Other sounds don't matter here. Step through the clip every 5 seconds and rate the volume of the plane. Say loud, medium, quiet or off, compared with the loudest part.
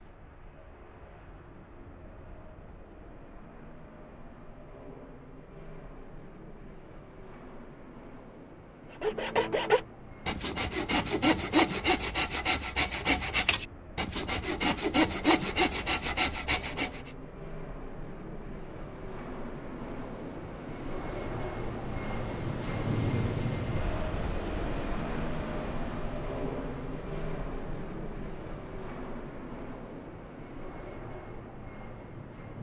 quiet, quiet, quiet, medium, loud, loud, medium.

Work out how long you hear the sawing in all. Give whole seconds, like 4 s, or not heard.
8 s.